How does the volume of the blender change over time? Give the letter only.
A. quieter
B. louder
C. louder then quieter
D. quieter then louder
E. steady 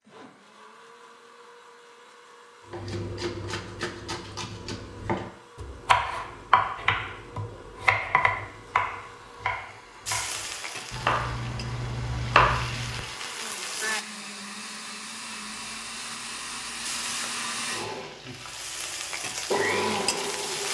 B.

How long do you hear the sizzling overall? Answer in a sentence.
The sizzling can be heard for 8 seconds in total.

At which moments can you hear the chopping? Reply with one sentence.
You can hear the chopping from 2.7 to 13.0 s.